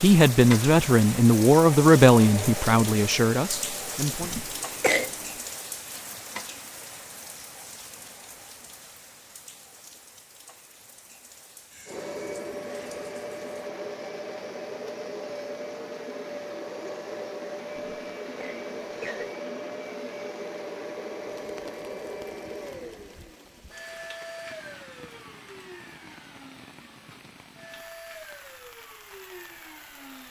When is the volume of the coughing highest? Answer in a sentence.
The volume of the coughing peaks at 5 seconds.